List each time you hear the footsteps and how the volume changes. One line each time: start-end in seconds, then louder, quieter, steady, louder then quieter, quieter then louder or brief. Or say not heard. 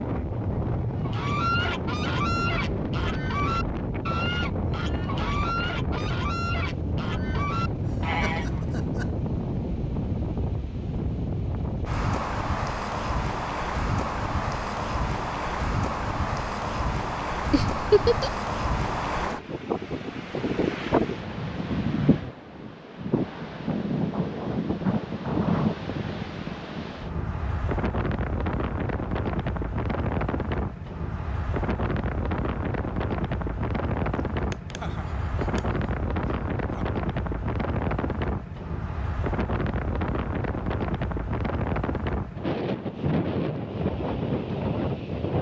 not heard.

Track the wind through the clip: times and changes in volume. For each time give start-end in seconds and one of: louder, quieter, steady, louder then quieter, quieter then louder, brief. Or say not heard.
0.0-45.3 steady.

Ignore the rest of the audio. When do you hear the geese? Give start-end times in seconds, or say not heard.
1.0-8.8.